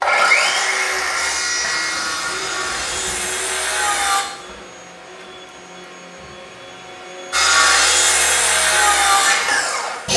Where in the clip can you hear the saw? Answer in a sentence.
The saw can be heard from 0.0 to 4.2 s and from 7.3 to 10.1 s.